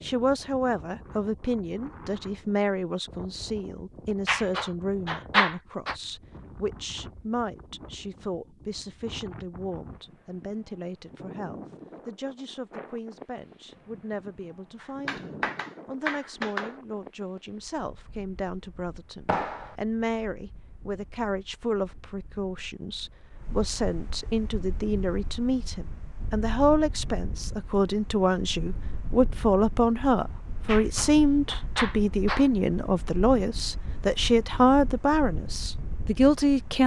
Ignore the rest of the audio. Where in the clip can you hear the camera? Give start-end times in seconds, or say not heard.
not heard.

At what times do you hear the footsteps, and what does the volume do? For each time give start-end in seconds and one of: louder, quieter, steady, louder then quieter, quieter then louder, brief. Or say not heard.
not heard.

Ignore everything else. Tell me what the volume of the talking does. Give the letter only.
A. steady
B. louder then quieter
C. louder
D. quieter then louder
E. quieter
D.